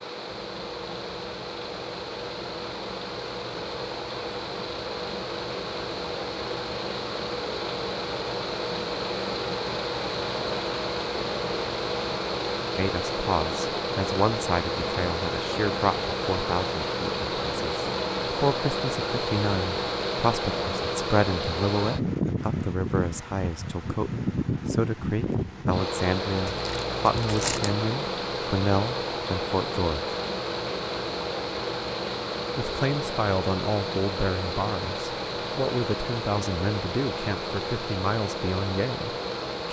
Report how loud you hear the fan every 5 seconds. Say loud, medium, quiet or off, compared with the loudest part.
medium, loud, loud, loud, loud, loud, loud, loud.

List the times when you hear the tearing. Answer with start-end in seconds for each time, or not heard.
26.4-27.8.